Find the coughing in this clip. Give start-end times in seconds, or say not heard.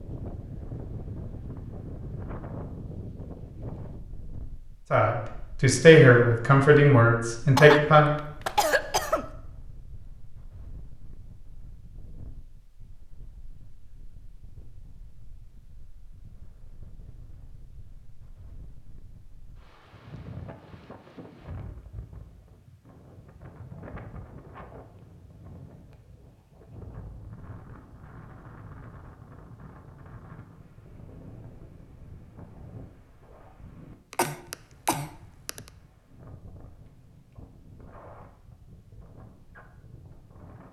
7.5-9.2, 34.1-35.6.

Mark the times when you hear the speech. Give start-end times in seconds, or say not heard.
4.9-8.2.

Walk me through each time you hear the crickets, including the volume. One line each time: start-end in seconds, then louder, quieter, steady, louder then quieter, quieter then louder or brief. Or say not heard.
not heard.